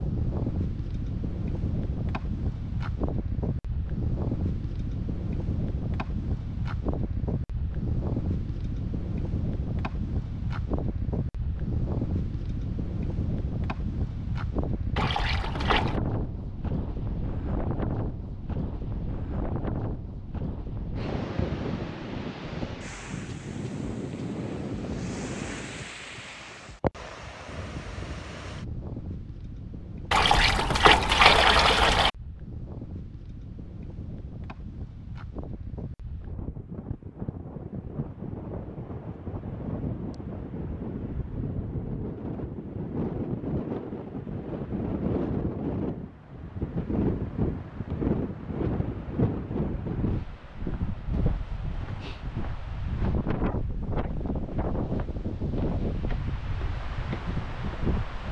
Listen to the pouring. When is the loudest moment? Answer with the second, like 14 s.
31 s.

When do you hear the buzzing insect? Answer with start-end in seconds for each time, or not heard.
not heard.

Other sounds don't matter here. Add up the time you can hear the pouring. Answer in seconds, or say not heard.
3 s.